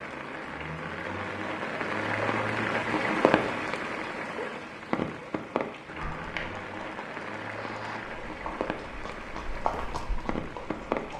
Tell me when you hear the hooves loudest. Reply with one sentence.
The loudest moment of the hooves is at 10 seconds.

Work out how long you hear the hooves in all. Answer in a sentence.
The hooves can be heard for 5 seconds in total.